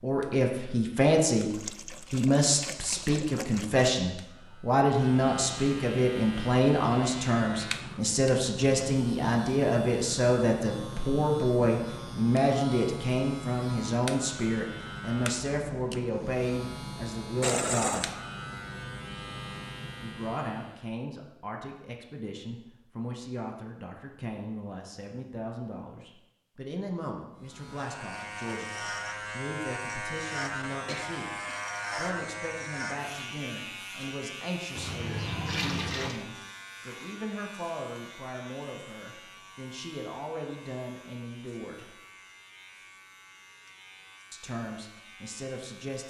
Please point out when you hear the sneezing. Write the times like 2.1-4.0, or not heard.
30.9-31.7.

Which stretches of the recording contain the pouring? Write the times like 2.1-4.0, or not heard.
1.5-3.9, 17.4-18.1, 34.8-36.2.